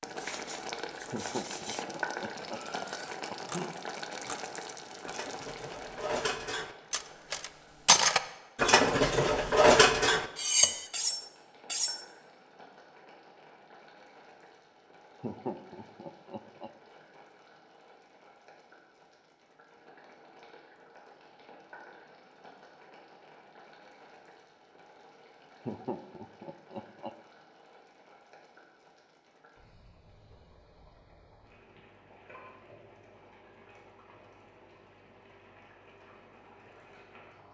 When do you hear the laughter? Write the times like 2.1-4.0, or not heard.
1.1-3.8, 15.2-16.7, 25.6-27.1.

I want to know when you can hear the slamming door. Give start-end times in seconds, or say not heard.
not heard.